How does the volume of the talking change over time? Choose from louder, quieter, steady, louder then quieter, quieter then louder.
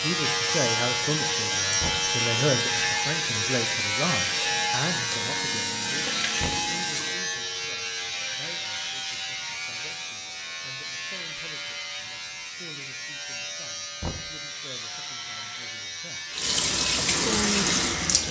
quieter.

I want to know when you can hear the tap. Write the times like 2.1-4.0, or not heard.
0.0-7.2, 16.3-18.2.